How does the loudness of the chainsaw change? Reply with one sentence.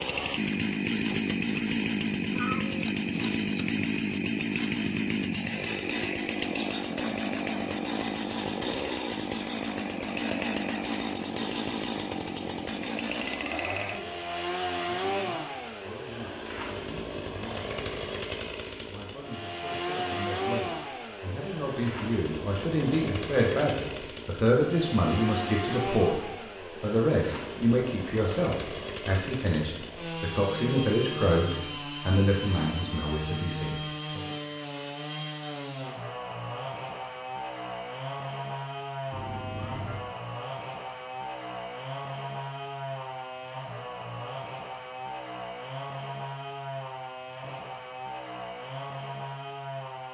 The volume of the chainsaw goes down.